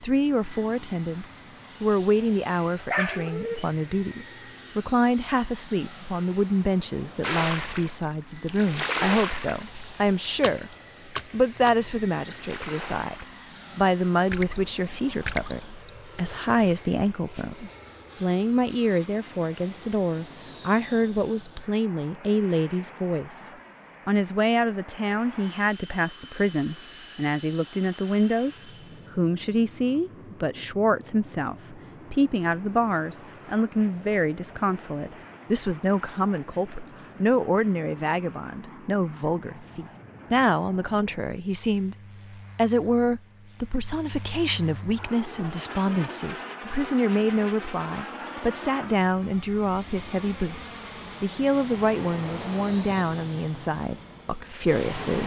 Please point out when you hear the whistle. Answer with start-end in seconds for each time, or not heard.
not heard.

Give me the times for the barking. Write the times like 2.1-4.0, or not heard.
2.1-4.0.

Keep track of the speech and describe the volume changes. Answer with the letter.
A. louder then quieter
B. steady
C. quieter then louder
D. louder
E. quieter
B.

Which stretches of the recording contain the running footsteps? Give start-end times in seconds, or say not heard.
not heard.